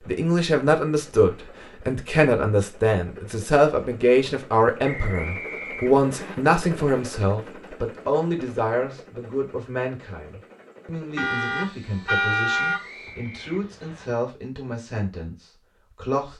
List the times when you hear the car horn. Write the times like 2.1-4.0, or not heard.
11.2-12.8.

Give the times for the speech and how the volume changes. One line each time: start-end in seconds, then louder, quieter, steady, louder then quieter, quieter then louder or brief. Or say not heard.
0.1-16.3 quieter.